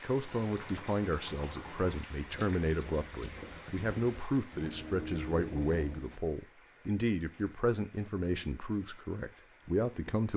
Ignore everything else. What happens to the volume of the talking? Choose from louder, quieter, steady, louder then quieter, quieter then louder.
steady.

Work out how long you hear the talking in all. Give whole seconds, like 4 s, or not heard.
10 s.